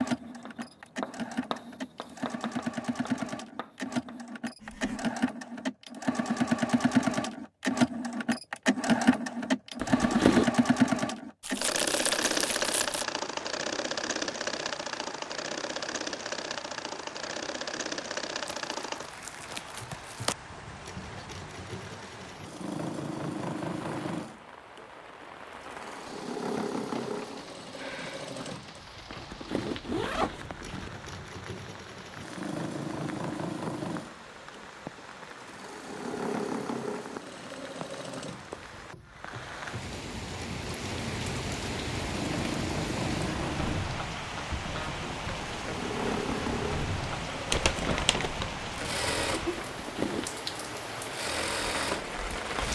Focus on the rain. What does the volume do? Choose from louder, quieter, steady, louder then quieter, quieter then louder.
louder.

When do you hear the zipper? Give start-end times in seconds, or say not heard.
9.8-10.5, 29.1-30.9, 49.5-50.3.